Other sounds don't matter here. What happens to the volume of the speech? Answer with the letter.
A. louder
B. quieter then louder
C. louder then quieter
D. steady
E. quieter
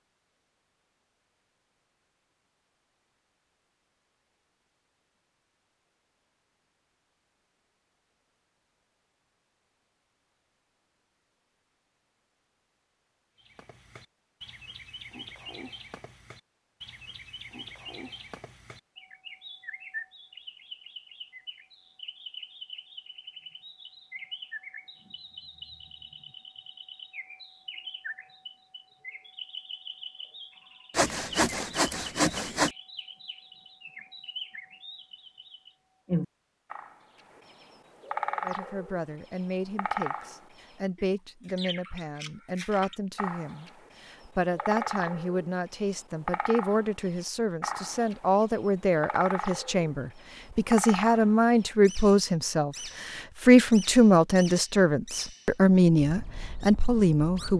A.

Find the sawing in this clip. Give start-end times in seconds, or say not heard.
30.9-32.7.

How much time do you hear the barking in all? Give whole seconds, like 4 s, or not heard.
not heard.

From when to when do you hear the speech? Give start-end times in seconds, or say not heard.
38.4-57.5.